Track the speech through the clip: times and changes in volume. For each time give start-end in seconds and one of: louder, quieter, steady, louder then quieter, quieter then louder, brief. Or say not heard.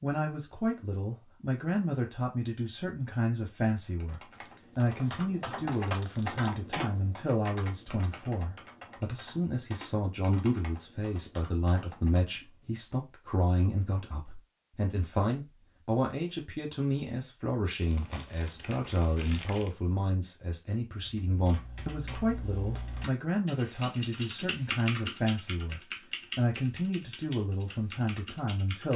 0.0-28.9 steady.